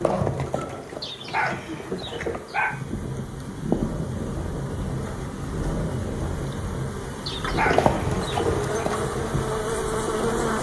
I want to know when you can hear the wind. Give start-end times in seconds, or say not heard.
2.6-10.5.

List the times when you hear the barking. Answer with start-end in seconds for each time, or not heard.
1.0-2.8, 7.2-8.8.